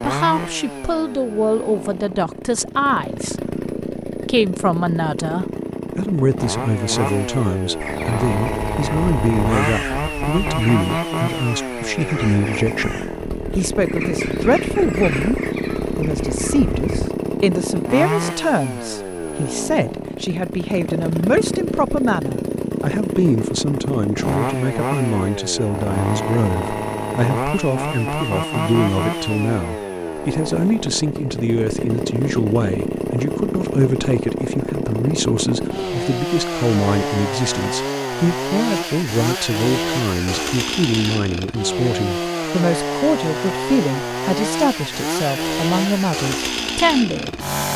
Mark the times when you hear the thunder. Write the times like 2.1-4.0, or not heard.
not heard.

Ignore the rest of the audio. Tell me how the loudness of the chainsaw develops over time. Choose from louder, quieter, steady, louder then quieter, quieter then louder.
steady.